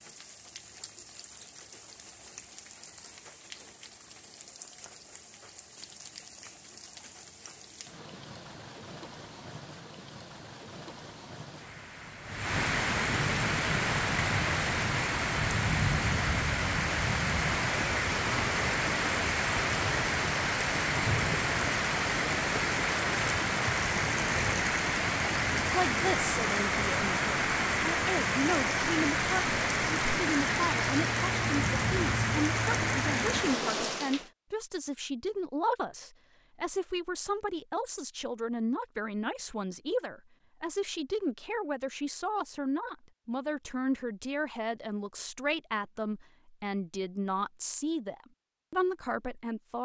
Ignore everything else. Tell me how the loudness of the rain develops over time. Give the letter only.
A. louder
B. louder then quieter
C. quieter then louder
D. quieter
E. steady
A.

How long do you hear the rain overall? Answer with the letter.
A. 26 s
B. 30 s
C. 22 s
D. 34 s
D.